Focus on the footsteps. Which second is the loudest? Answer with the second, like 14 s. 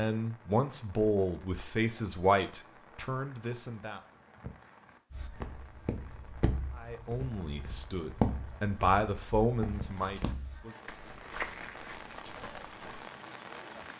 8 s.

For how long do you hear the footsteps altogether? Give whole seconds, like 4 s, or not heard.
8 s.